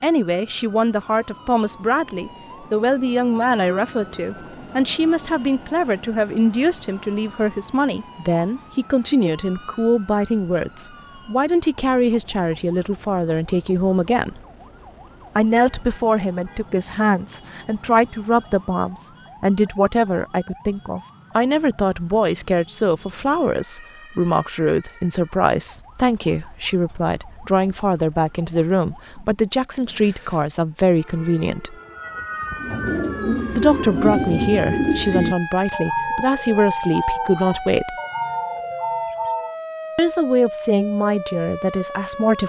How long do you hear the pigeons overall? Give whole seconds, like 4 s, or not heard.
7 s.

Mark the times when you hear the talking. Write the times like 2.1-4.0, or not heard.
0.0-14.3, 15.3-31.8, 33.5-38.0, 40.0-42.4.